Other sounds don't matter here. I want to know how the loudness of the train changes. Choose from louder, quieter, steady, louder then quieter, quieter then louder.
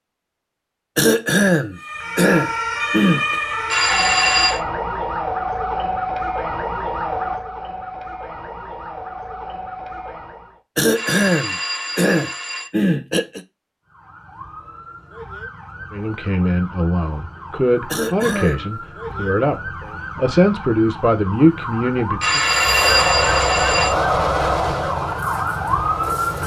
quieter.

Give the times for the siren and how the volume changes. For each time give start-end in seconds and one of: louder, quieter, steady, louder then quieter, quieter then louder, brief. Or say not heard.
1.8-10.6 quieter
13.8-26.4 louder.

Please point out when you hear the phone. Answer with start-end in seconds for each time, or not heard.
3.7-4.6, 10.9-12.7, 22.2-23.9.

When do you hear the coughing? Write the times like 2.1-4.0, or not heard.
0.9-3.4, 10.8-13.4, 17.9-18.7.